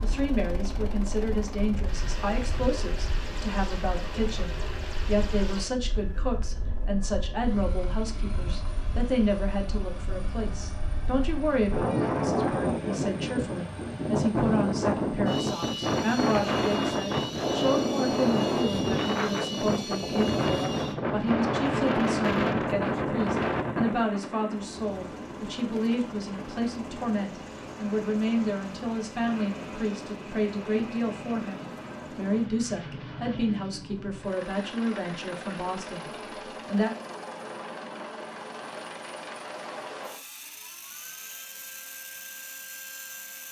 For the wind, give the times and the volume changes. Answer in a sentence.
You can hear the wind from 0.0 to 24.1 s, getting louder.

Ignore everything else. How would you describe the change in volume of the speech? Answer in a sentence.
The loudness of the speech stays about the same.